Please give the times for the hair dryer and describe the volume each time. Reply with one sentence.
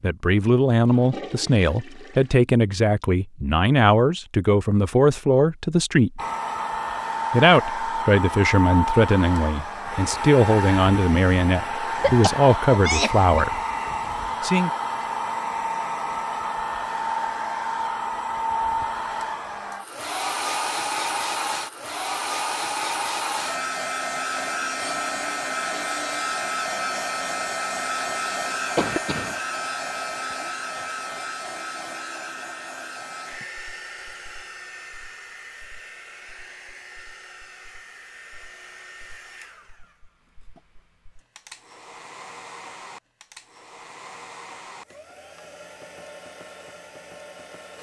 You can hear the hair dryer from 6.2 to 47.7 s, getting quieter.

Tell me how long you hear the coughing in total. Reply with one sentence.
You can hear the coughing for 2 seconds altogether.